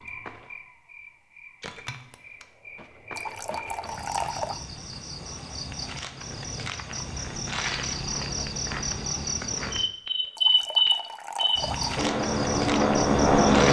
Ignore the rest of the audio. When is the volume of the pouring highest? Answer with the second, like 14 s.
4 s.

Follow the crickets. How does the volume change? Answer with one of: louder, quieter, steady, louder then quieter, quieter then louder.
louder.